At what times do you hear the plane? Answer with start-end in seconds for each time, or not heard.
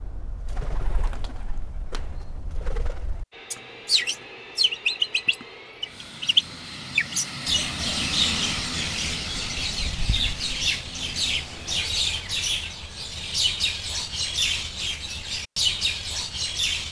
3.3-11.8.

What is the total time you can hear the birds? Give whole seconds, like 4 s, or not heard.
17 s.